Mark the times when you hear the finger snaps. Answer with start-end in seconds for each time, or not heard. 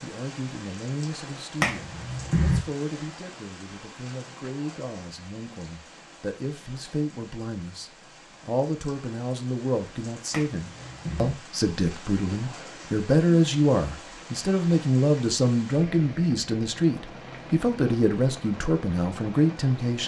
1.6-2.6, 10.3-11.3.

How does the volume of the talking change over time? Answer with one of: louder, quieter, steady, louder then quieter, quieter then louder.
louder.